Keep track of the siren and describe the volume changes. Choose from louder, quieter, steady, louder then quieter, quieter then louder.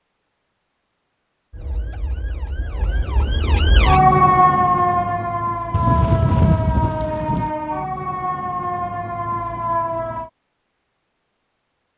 louder then quieter.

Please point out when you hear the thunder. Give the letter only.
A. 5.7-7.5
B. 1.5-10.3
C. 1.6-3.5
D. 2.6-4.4
A.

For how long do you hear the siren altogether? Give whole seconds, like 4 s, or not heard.
9 s.